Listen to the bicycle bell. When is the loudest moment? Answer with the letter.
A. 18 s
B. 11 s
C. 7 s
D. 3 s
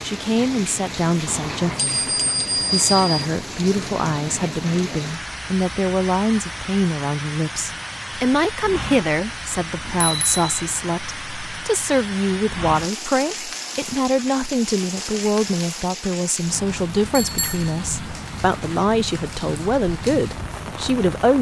D.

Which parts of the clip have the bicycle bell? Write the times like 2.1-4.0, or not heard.
1.2-3.2, 9.8-10.7, 17.1-18.1.